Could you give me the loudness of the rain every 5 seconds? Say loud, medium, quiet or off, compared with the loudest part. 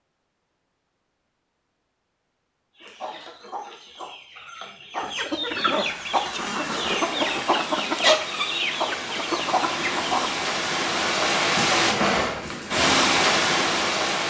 off, medium, loud.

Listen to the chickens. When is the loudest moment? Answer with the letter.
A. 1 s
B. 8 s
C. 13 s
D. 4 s
B.